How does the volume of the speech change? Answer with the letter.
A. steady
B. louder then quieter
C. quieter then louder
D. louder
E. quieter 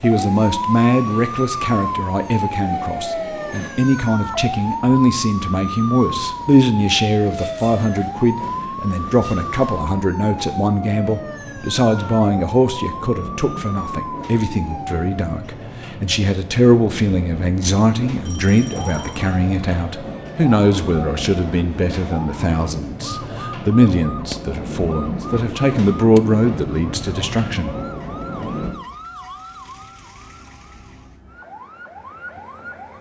A.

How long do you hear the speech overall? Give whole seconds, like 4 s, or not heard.
28 s.